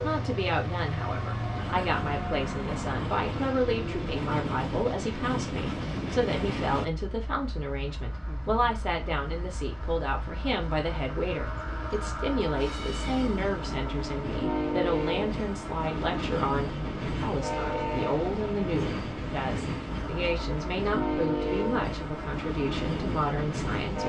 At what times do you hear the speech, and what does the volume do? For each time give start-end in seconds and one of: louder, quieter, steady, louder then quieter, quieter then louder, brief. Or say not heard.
0.0-24.0 steady.